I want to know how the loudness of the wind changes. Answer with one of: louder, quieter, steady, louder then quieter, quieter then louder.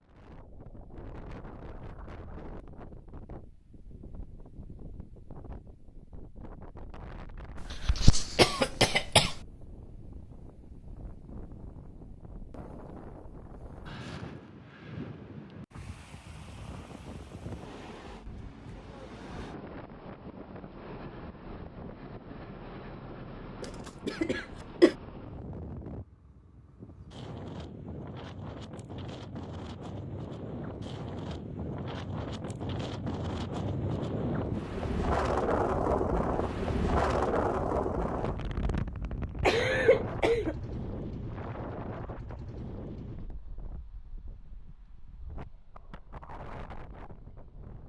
louder then quieter.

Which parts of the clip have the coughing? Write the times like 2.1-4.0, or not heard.
7.8-9.3, 23.6-24.9, 39.4-40.5.